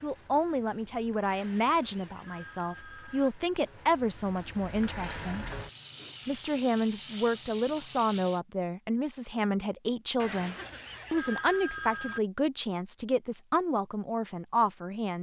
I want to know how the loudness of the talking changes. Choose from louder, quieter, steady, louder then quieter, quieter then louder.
steady.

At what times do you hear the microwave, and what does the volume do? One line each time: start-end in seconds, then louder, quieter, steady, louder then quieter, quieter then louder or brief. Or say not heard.
not heard.